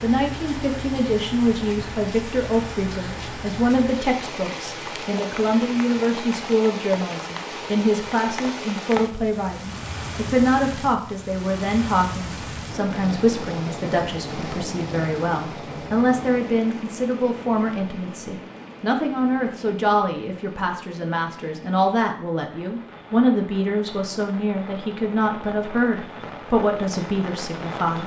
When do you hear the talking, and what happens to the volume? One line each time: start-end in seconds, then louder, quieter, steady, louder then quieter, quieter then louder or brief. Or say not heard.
0.0-28.0 steady.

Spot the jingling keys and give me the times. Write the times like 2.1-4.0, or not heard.
not heard.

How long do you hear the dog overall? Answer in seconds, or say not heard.
not heard.